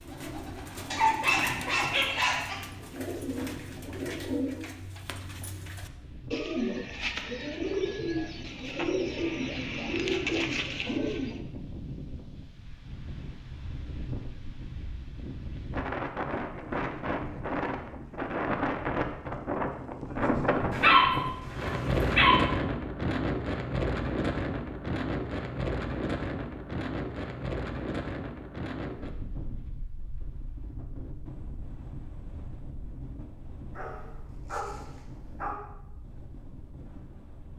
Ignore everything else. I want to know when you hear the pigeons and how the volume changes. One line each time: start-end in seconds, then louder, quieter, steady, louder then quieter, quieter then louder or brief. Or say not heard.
0.0-11.4 louder.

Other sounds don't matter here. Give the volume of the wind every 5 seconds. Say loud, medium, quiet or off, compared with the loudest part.
quiet, quiet, quiet, loud, loud, medium, quiet, quiet.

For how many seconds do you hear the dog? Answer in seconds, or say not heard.
5 s.